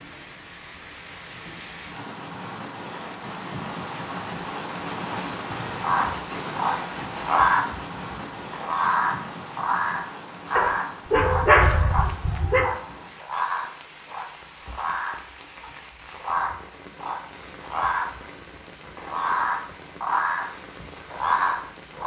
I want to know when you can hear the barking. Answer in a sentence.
The barking can be heard from 10.6 to 12.8 s.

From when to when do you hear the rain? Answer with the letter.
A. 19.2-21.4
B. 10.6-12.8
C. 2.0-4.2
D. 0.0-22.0
D.